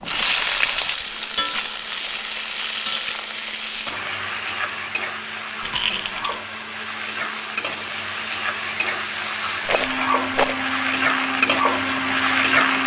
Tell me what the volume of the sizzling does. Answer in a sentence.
The loudness of the sizzling goes down, then up.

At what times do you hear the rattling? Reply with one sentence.
You can hear the rattling from 0.9 to 1.6 s, from 5.6 to 6.3 s and from 9.7 to 10.7 s.